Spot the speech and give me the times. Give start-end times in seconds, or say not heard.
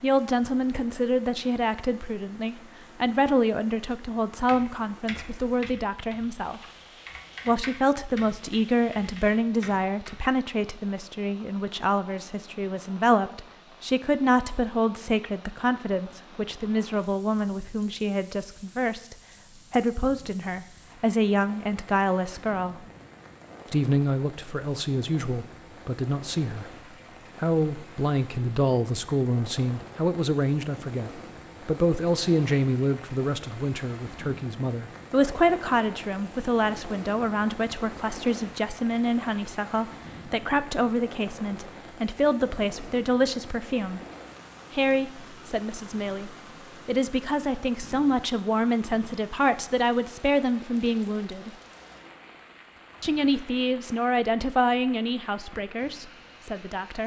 0.0-6.6, 7.5-22.9, 23.7-26.7, 27.4-44.0, 44.7-51.5, 53.0-57.0.